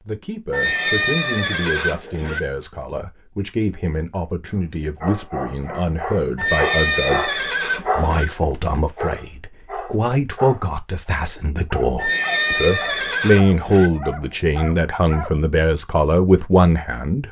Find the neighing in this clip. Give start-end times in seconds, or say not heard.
0.5-2.4, 6.3-8.2, 11.9-13.9.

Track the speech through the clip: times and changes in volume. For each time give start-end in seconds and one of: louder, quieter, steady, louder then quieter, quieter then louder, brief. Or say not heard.
0.0-17.2 louder.